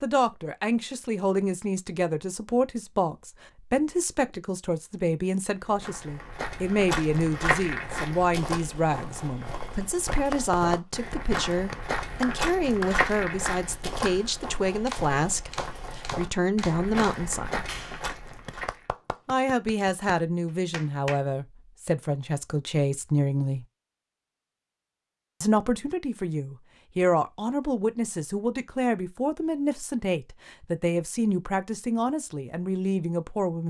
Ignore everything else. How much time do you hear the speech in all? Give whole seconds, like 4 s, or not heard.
30 s.